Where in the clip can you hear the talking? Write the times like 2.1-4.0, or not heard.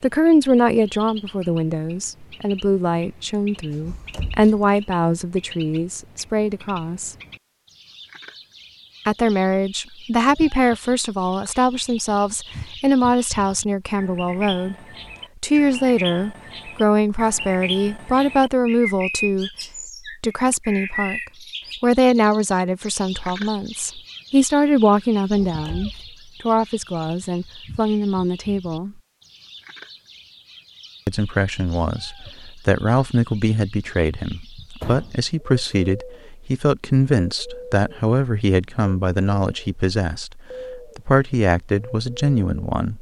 0.0-7.2, 9.1-14.8, 15.4-19.5, 20.2-21.2, 21.8-28.9, 31.1-42.9.